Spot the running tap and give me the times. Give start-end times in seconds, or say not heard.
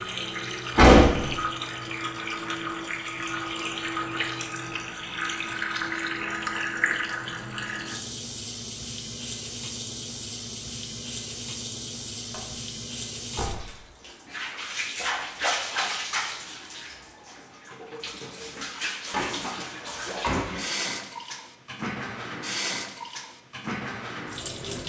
0.0-24.8.